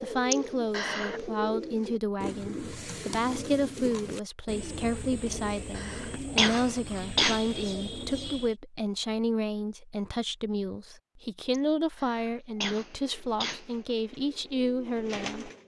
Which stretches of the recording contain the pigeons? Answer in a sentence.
The pigeons can be heard from 0.0 to 8.6 s and from 12.9 to 15.6 s.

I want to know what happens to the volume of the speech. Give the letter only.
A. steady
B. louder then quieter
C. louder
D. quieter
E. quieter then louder
A.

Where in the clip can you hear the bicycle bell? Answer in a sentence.
The bicycle bell can't be heard in this clip.